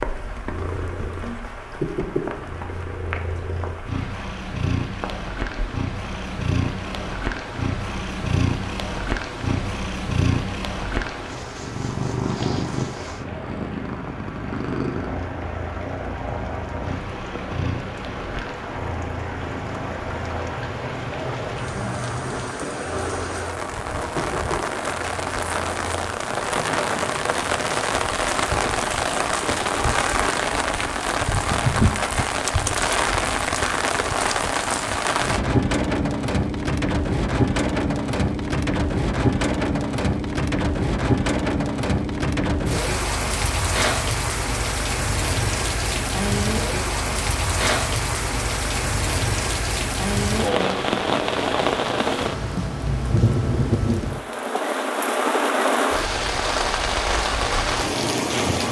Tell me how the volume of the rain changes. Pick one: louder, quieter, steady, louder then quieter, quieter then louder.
louder.